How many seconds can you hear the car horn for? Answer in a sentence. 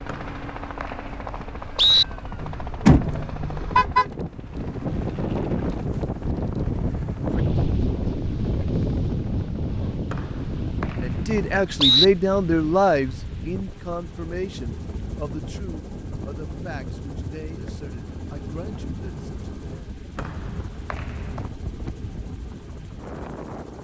You can hear the car horn for 2 seconds altogether.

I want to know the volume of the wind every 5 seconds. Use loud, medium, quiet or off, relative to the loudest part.
medium, loud, medium, quiet, quiet.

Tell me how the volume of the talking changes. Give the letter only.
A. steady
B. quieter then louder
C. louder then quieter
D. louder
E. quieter
E.